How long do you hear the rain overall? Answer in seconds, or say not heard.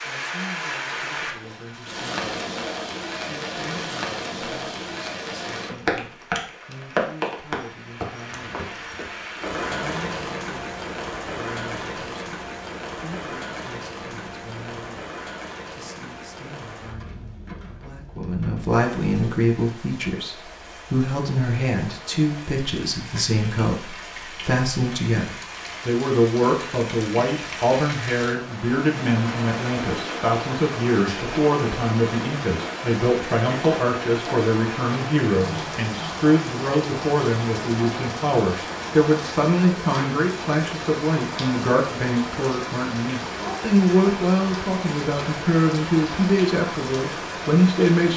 48 s.